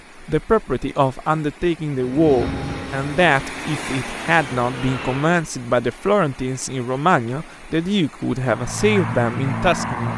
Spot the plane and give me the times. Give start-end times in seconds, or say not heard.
1.9-5.5, 8.3-10.1.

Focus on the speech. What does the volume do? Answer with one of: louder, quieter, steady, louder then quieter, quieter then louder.
steady.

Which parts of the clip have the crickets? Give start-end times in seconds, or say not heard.
not heard.